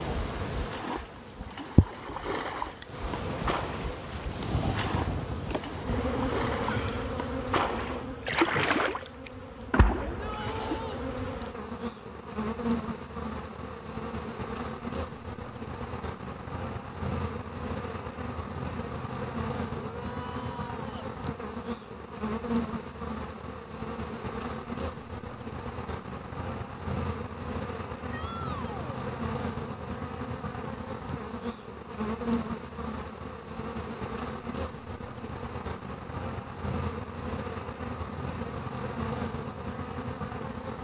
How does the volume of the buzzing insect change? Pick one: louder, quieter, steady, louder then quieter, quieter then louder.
steady.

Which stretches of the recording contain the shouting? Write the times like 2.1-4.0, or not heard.
10.0-11.1, 19.9-21.1, 28.1-29.1.